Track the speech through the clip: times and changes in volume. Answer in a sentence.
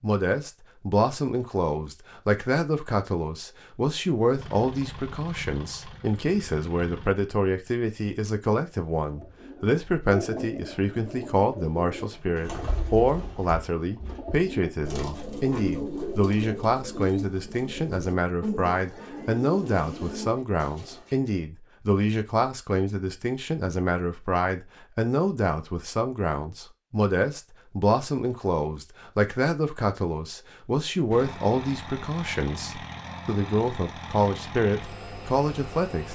The speech can be heard from 0.0 to 36.1 s, at a steady volume.